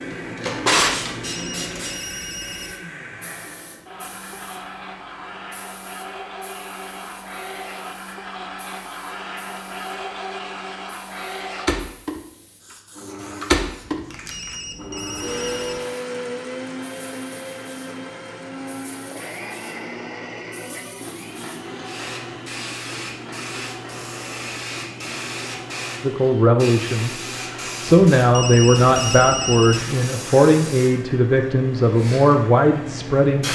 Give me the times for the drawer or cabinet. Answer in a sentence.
The drawer or cabinet can be heard from 0.1 to 1.1 s.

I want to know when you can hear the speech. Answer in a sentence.
The speech can be heard from 26.0 to 33.4 s.